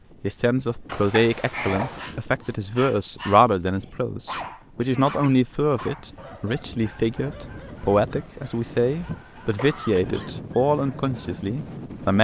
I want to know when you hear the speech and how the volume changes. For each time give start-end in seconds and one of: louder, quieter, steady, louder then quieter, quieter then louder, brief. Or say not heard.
0.2-12.1 steady.